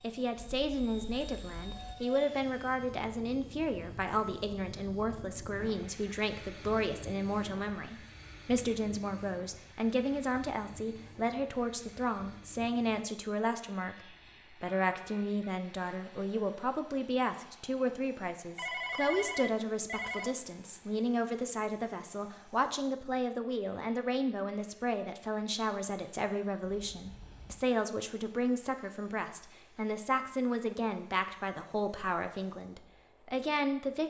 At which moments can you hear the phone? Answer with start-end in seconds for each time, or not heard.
0.3-1.9, 18.6-20.4.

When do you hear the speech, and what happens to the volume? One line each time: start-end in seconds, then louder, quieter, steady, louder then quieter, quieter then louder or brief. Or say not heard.
0.0-34.0 steady.